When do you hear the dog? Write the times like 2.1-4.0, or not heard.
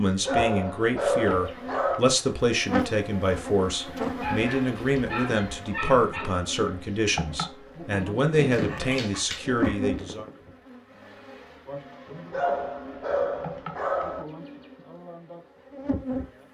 0.2-2.0, 4.2-6.3, 8.3-10.3, 12.3-14.2.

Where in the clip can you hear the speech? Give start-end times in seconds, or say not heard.
0.0-10.2.